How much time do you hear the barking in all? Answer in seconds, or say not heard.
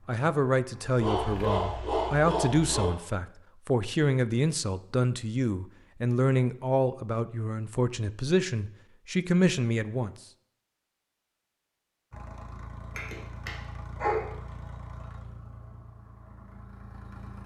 3 s.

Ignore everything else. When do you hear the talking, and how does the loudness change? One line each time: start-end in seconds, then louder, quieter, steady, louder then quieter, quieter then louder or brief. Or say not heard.
0.1-10.2 steady.